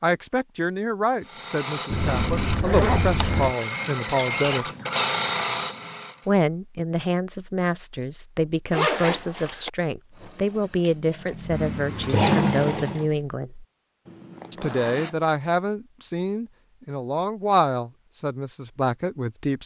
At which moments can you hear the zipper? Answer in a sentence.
You can hear the zipper from 1.9 to 3.5 s, from 8.7 to 9.7 s and from 14.1 to 15.2 s.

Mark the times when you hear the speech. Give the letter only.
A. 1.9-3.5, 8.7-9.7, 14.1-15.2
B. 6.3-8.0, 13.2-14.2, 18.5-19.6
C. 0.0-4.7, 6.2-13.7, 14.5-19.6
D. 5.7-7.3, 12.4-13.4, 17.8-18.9
C.